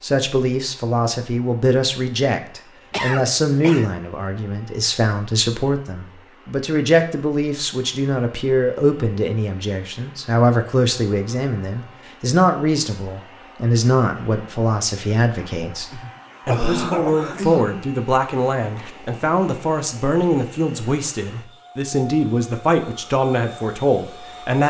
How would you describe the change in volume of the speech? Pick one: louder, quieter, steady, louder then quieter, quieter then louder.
steady.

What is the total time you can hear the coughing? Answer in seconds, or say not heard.
3 s.